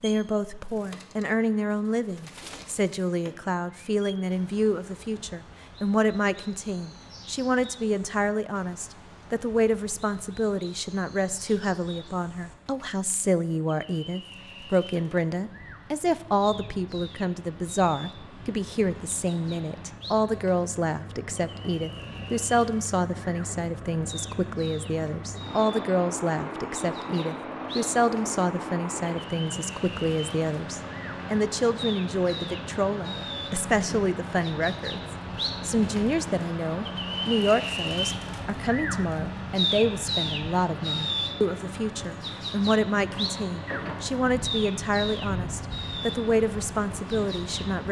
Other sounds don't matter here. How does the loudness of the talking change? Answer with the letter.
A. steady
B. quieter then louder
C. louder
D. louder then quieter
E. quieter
A.